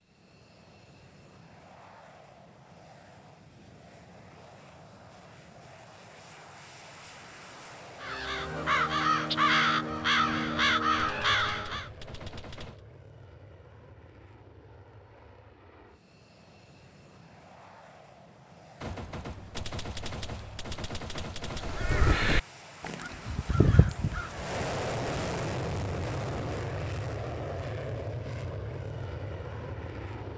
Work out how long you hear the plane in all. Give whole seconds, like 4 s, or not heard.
30 s.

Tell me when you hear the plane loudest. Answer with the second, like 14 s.
25 s.